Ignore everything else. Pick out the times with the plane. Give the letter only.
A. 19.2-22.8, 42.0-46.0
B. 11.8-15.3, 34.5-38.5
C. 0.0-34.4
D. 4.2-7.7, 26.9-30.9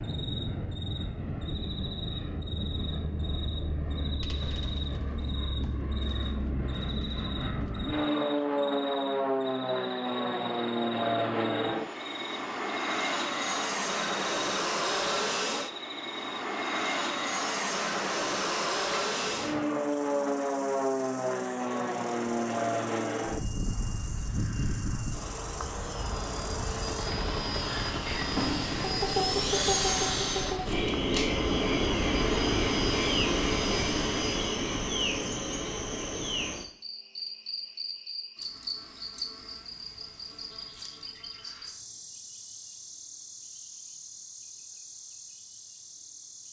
C.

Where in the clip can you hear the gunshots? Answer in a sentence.
You can hear the gunshots from 4.2 to 7.7 s and from 26.9 to 30.9 s.